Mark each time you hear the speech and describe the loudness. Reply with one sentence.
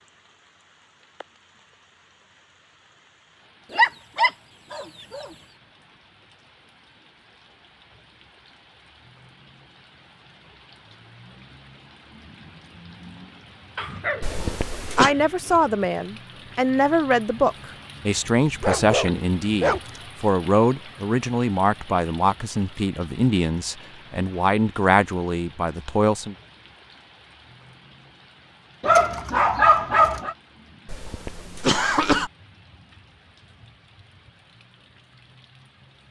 The speech can be heard from 14.4 to 26.4 s, at a steady volume.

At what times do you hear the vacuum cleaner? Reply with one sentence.
The vacuum cleaner can't be heard in this clip.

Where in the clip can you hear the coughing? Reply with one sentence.
The coughing can be heard from 14.2 to 15.2 s and from 30.9 to 32.3 s.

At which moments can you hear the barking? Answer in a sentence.
The barking can be heard from 3.7 to 5.3 s, from 13.8 to 15.8 s, from 18.4 to 20.0 s and from 28.8 to 30.4 s.